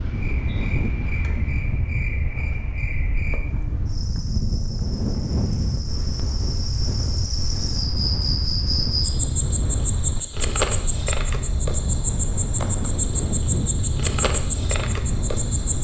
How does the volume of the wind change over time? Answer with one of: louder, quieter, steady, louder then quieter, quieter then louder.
steady.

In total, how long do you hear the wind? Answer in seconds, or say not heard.
16 s.